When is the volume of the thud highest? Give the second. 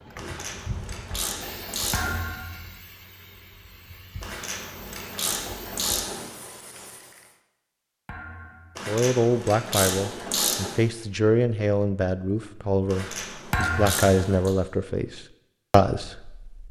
14 s.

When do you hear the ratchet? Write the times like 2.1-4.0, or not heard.
0.1-2.2, 4.2-6.3, 8.8-10.8, 12.8-14.6.